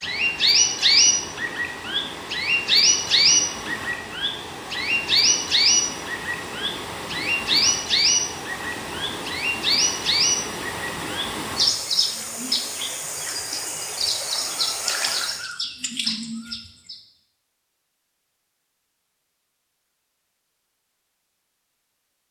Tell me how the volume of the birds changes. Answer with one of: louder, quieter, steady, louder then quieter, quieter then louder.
quieter.